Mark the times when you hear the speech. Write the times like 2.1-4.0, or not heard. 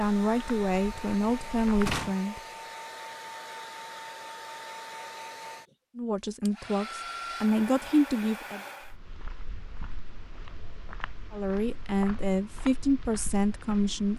0.0-2.4, 6.0-8.6, 11.3-14.1.